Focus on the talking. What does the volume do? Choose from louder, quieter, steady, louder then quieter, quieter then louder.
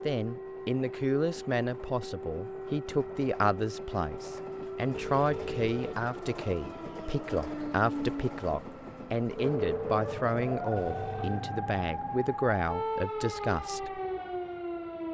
steady.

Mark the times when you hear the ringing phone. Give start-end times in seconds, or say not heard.
4.9-6.0, 10.8-11.4.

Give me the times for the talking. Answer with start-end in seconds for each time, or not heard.
0.1-14.0.